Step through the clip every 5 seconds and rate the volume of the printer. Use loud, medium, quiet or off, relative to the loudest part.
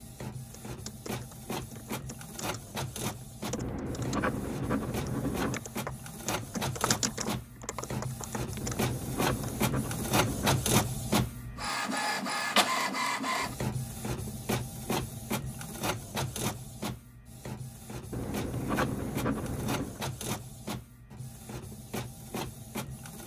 medium, medium, loud, medium, medium.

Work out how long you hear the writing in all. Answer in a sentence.
The writing can be heard for 6 seconds in total.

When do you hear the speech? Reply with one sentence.
The speech can't be heard in this clip.